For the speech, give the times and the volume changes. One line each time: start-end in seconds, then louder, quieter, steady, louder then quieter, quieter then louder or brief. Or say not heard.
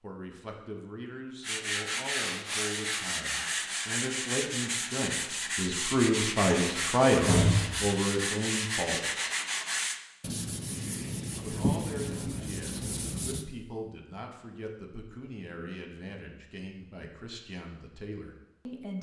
0.0-9.3 louder then quieter
11.4-18.9 steady.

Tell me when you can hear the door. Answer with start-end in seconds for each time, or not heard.
6.4-7.8.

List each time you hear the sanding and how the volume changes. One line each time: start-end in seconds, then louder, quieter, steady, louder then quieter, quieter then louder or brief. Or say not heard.
1.4-13.4 steady.